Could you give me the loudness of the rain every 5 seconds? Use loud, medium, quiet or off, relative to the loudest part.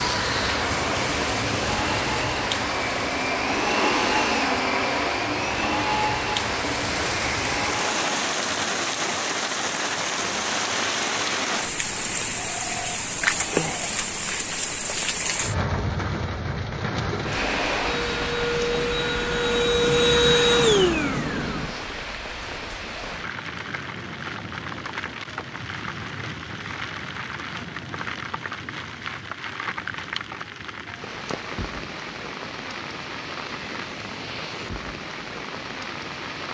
loud, loud, loud, loud, medium, medium, medium, medium.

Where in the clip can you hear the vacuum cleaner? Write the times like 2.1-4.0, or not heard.
0.0-8.2, 17.1-21.9.